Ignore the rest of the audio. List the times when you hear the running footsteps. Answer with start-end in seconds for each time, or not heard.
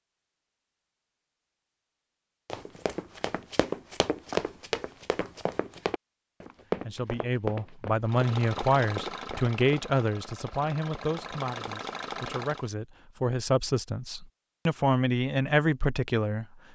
2.5-9.8.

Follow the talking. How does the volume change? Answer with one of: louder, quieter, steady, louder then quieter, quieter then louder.
quieter then louder.